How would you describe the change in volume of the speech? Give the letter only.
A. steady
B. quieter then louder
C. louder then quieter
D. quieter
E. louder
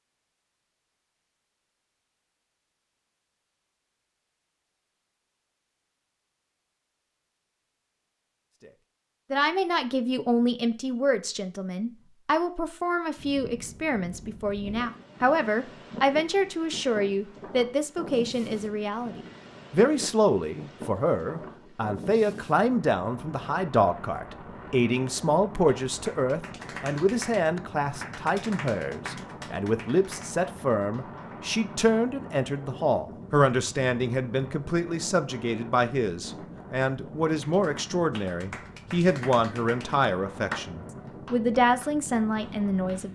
A.